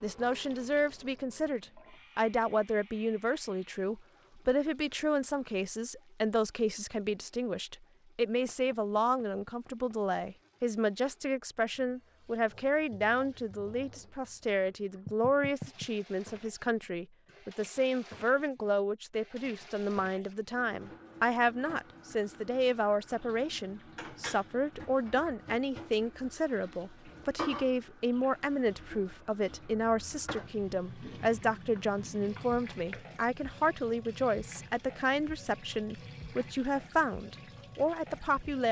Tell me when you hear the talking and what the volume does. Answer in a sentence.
You can hear the talking from 0.0 to 38.6 s, at a steady volume.